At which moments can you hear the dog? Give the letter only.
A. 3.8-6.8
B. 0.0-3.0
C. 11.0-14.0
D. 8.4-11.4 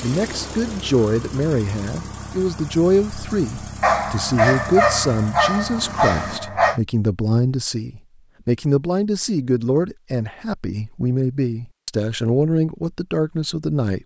A.